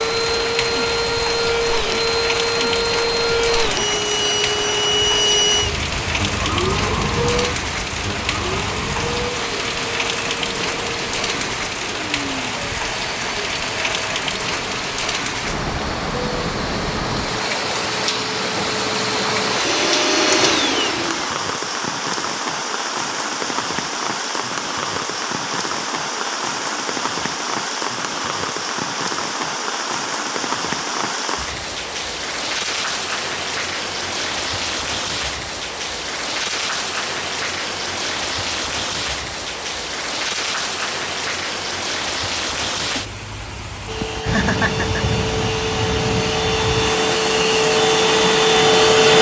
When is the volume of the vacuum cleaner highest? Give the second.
49 s.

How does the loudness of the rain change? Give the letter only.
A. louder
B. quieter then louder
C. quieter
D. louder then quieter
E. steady
E.